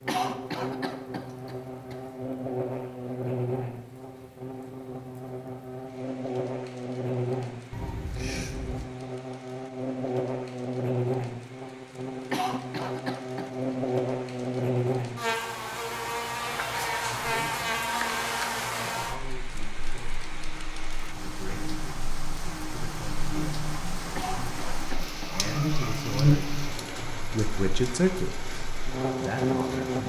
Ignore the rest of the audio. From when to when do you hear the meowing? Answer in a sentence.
The meowing can be heard from 7.7 to 8.9 s.